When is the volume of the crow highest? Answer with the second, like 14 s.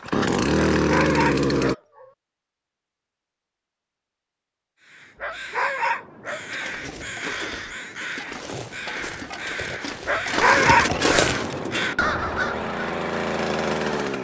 11 s.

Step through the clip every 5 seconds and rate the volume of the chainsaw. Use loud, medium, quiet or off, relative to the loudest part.
loud, off, medium.